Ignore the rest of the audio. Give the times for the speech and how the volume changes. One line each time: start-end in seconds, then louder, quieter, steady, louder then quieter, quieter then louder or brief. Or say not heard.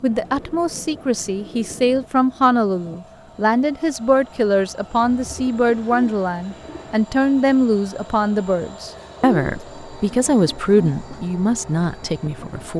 0.0-12.7 steady.